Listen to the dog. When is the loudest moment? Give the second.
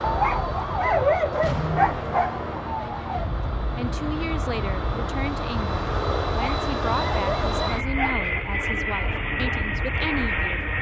1 s.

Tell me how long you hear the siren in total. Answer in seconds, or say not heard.
11 s.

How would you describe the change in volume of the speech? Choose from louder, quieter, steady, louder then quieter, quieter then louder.
steady.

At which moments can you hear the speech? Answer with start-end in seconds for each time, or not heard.
3.8-10.7.